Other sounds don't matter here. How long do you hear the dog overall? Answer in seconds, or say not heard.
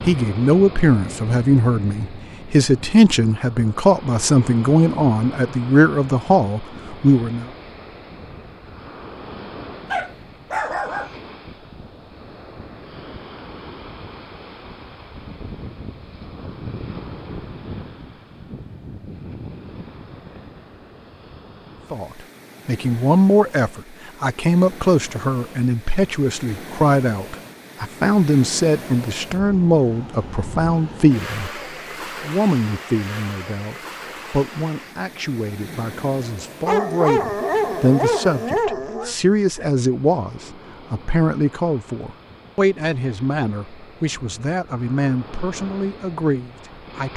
4 s.